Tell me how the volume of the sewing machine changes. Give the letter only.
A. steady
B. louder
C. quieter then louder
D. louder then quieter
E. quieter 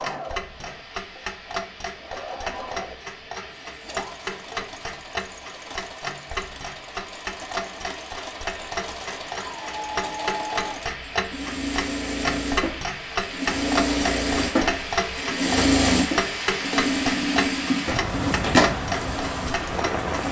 B.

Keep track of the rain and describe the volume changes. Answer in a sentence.
The loudness of the rain goes up.